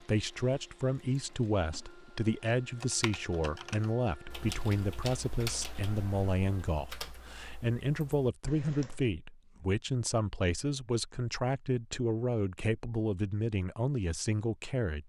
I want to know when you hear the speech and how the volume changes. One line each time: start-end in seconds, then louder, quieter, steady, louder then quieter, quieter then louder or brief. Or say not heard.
0.0-15.0 steady.